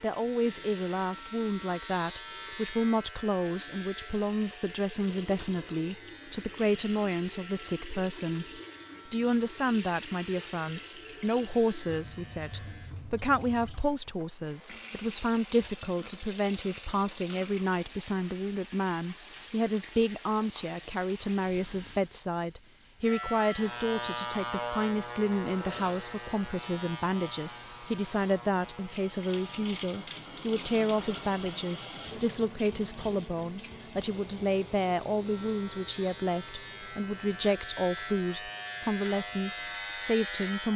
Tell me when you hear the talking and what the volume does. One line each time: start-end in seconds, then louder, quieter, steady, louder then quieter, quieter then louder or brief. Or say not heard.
0.0-40.7 steady.